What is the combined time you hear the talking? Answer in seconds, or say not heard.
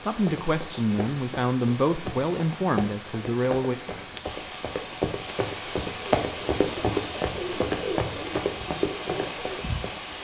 4 s.